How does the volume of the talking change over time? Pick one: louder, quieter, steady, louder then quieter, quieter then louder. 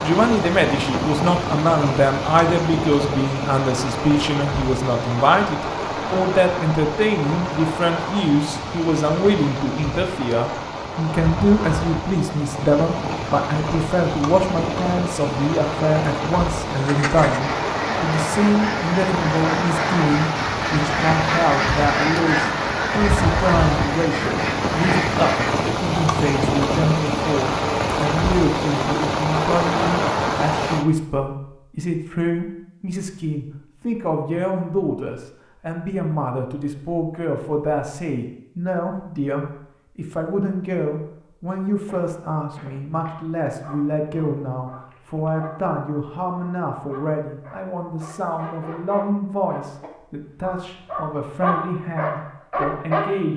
quieter.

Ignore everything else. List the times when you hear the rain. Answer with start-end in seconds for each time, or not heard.
0.0-30.9.